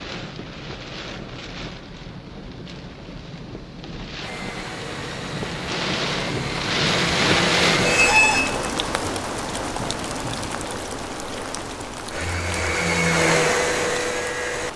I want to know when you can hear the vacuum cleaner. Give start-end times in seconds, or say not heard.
4.2-8.2, 12.1-14.7.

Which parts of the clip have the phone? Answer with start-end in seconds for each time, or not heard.
not heard.